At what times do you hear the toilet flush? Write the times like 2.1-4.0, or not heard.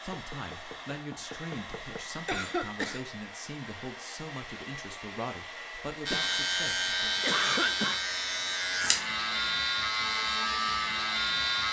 not heard.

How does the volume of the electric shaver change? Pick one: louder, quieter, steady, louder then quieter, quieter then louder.
steady.